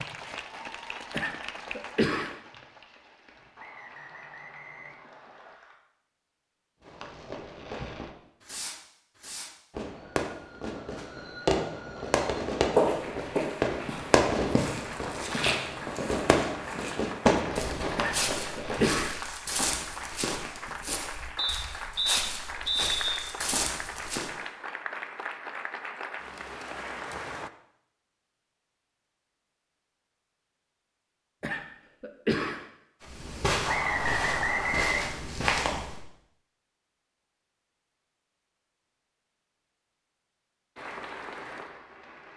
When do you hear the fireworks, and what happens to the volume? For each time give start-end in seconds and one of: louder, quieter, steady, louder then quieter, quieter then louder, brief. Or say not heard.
6.8-19.1 louder.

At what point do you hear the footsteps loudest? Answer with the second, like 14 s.
13 s.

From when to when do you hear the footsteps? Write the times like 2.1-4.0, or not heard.
12.2-24.3, 33.0-36.0.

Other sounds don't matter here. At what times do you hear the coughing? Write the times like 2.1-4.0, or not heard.
1.1-2.4, 17.9-19.1, 31.4-32.6.